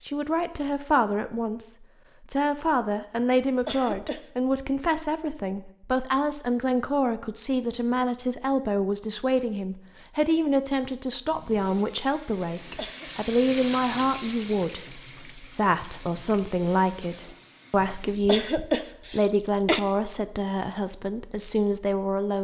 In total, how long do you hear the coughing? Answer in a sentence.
The coughing can be heard for 4 seconds in total.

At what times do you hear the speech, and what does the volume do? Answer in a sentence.
The speech can be heard from 0.0 to 22.4 s, at a steady volume.